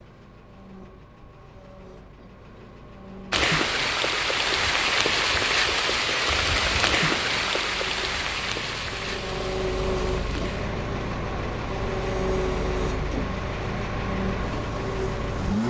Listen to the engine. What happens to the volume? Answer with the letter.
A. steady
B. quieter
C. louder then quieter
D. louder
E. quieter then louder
D.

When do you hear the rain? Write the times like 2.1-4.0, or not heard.
3.3-15.6.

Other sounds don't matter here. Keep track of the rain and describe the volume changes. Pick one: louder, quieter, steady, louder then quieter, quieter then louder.
quieter.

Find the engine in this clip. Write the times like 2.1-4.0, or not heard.
0.0-15.6.